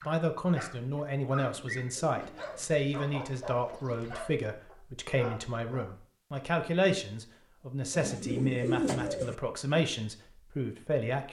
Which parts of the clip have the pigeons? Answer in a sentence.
You can hear the pigeons from 1.5 to 2.7 s and from 7.9 to 9.3 s.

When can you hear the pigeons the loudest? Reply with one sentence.
The loudest moment of the pigeons is at 9 seconds.